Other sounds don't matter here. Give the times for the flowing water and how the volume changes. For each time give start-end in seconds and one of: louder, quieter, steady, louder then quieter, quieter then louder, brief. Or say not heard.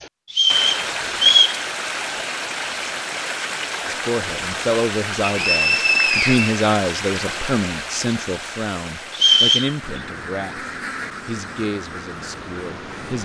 0.0-13.2 quieter.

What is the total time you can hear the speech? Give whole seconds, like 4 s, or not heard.
9 s.